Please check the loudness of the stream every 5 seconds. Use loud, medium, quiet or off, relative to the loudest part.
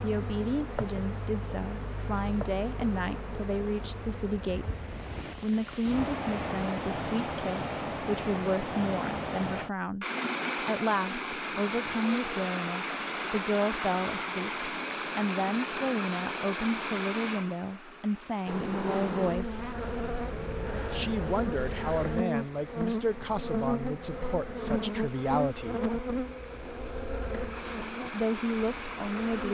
quiet, loud, loud, loud, quiet, medium.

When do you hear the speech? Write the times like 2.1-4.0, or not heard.
0.0-4.7, 5.4-19.8, 20.9-25.9, 28.1-29.5.